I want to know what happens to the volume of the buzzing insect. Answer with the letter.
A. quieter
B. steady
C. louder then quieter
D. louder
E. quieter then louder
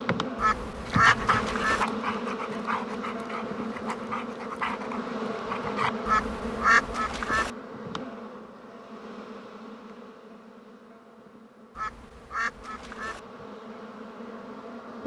A.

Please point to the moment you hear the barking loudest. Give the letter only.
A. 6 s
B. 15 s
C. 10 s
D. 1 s
D.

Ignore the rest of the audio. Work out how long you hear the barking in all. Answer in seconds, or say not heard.
5 s.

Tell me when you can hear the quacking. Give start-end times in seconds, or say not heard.
0.3-1.9, 6.0-7.5, 11.8-13.2.